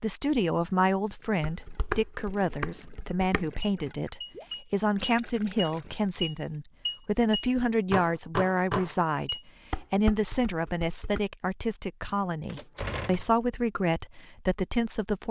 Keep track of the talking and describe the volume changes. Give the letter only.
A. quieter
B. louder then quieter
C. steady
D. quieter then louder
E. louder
C.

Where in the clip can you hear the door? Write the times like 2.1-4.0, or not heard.
12.4-13.3.